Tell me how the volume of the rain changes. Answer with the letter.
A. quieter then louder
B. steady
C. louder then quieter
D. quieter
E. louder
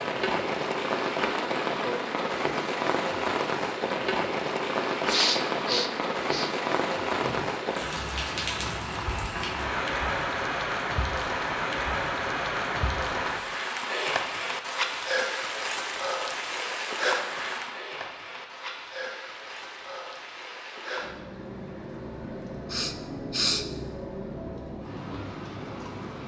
D.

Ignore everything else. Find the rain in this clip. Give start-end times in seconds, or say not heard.
0.0-26.2.